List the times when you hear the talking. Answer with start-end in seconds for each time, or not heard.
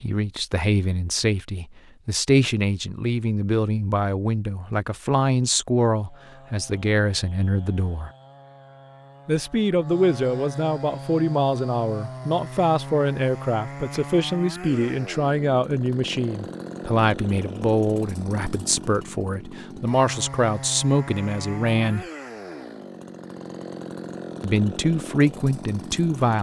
0.0-8.1, 9.2-22.1, 24.4-26.3.